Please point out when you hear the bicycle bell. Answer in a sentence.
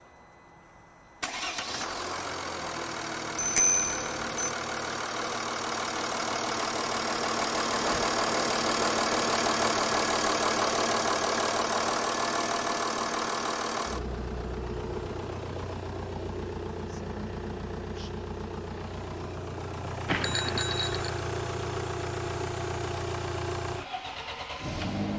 The bicycle bell can be heard from 3.4 to 4.5 s and from 20.1 to 21.2 s.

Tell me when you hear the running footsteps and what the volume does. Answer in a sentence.
You can't hear the running footsteps here.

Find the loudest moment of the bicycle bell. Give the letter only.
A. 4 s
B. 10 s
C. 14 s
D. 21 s
A.